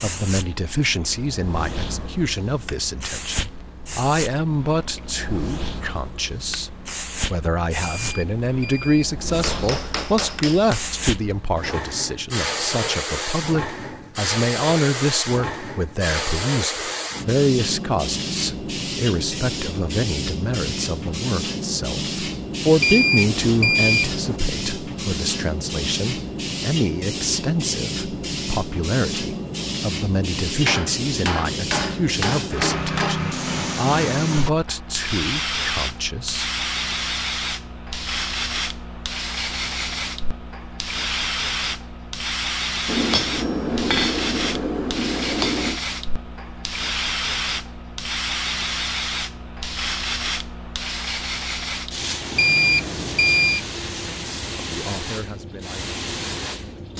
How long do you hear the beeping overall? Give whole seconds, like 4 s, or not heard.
4 s.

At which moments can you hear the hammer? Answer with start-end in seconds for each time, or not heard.
9.3-10.8, 30.6-33.3, 42.9-45.8.